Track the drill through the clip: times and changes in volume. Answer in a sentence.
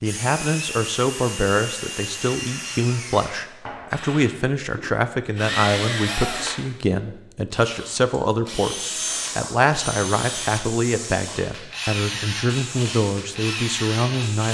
The drill can be heard from 0.0 to 14.5 s, at a steady volume.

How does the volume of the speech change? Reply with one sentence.
The loudness of the speech stays about the same.